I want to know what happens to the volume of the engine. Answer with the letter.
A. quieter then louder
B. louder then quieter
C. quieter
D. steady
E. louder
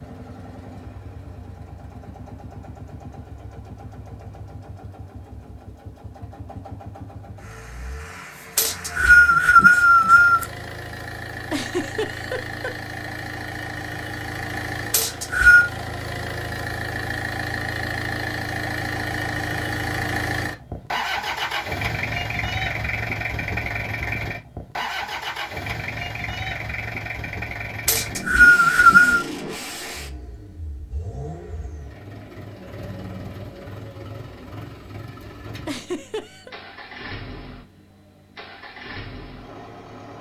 B.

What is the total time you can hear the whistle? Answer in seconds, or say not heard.
4 s.